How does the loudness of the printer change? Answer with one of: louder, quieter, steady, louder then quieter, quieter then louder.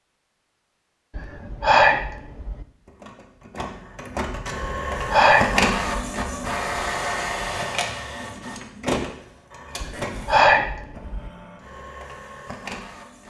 louder then quieter.